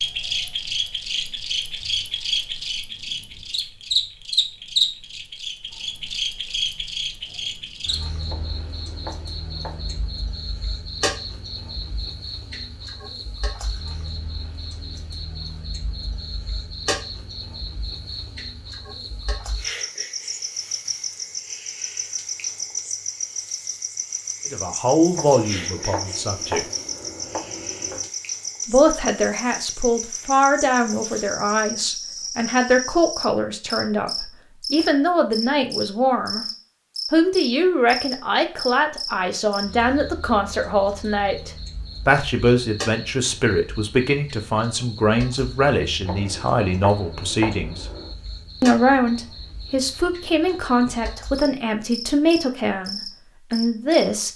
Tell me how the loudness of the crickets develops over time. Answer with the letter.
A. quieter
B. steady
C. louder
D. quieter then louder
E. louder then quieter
A.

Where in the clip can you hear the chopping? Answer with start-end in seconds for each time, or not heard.
8.2-10.1, 25.1-28.1, 46.0-48.1.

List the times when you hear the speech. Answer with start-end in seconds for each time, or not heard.
24.5-26.6, 28.6-36.5, 37.1-47.9, 48.6-54.3.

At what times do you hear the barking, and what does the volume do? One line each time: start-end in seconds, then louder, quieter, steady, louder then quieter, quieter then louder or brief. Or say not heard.
not heard.